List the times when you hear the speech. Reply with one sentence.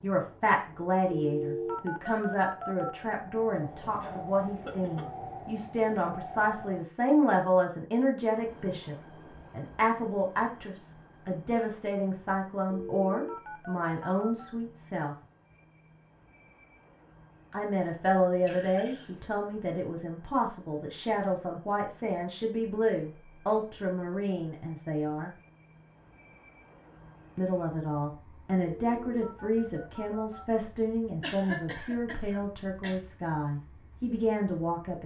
The speech can be heard from 0.0 to 15.2 s, from 17.5 to 25.3 s and from 27.4 to 35.0 s.